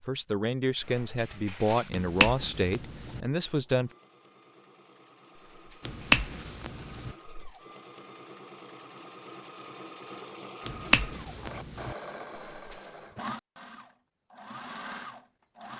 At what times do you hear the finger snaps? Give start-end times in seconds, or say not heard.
1.9-3.2, 5.8-7.2, 10.7-11.9.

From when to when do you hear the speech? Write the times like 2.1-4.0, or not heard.
0.0-3.9.